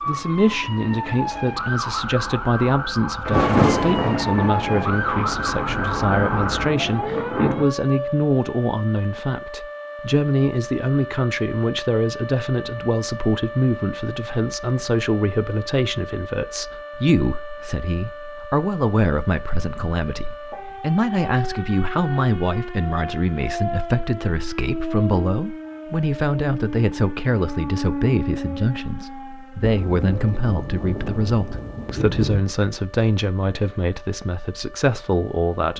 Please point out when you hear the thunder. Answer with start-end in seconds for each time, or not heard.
3.2-7.7, 29.6-32.5.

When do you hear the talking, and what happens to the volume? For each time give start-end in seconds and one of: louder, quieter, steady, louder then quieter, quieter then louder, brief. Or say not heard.
0.1-35.7 steady.